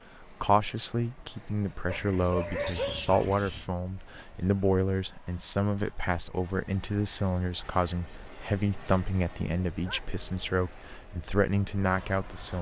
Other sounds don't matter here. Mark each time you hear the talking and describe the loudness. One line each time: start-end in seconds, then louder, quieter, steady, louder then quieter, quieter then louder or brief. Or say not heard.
0.2-12.5 steady.